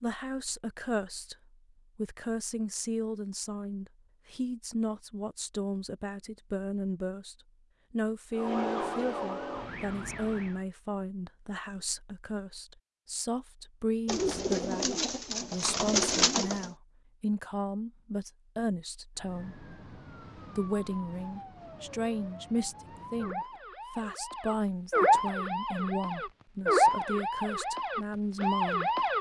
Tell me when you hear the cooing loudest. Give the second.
16 s.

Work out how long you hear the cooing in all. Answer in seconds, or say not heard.
3 s.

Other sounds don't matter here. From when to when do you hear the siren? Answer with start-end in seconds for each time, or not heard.
8.3-10.6, 19.1-29.1.